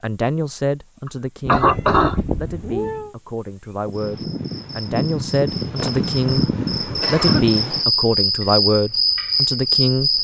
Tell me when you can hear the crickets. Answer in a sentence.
The crickets can be heard from 0.0 to 10.1 s.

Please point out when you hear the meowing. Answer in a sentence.
You can hear the meowing from 1.4 to 3.1 s.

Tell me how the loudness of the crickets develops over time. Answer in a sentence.
The volume of the crickets goes up.